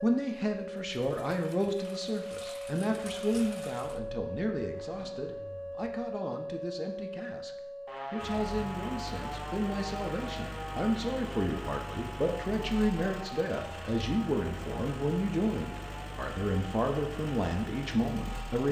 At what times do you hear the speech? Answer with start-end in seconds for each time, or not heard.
0.0-18.6.